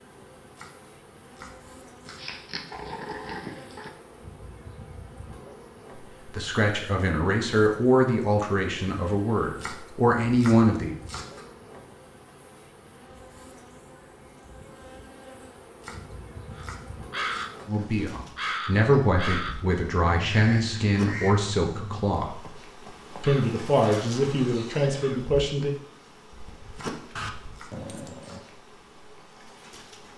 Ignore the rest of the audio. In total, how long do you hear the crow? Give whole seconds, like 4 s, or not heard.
9 s.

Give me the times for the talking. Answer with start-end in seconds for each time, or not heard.
6.2-10.9, 17.6-22.4, 23.2-25.8.